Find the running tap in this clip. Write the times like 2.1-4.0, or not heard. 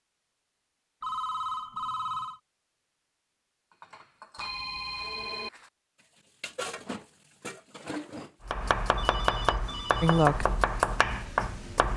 not heard.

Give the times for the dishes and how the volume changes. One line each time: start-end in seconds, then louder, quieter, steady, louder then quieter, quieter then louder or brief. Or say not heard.
3.7-8.3 quieter then louder.